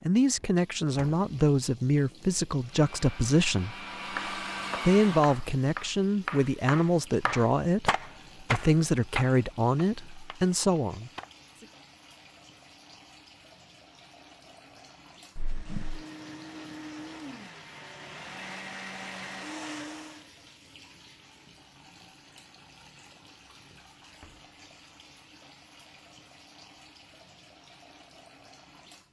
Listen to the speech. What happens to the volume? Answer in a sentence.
The volume of the speech stays about the same.